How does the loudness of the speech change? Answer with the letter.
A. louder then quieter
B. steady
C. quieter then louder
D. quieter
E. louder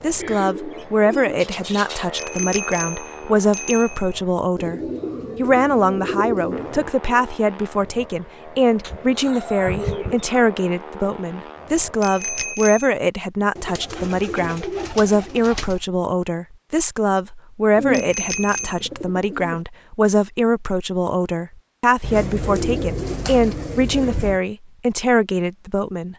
B.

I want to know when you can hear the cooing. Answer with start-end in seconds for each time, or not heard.
0.2-2.3, 4.5-6.9, 8.8-10.4, 13.6-15.8, 17.8-19.6, 22.0-24.4.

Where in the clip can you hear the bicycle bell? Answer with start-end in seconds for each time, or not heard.
2.1-4.2, 12.0-12.9, 17.9-18.8.